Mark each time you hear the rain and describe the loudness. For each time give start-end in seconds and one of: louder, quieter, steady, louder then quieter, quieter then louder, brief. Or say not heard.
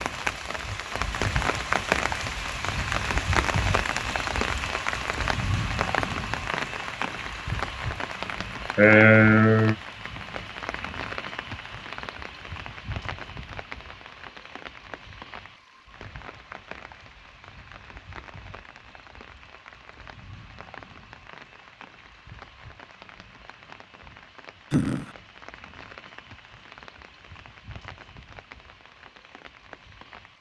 0.0-30.3 quieter.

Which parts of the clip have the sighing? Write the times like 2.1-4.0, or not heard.
8.8-9.8, 24.7-25.1.